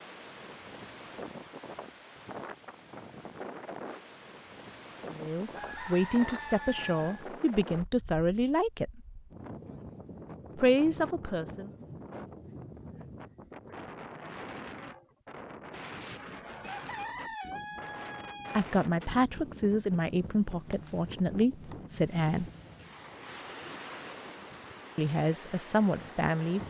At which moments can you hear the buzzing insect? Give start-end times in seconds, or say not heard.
not heard.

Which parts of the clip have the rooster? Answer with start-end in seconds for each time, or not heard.
5.5-7.2, 16.6-18.6.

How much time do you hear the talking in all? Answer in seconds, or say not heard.
11 s.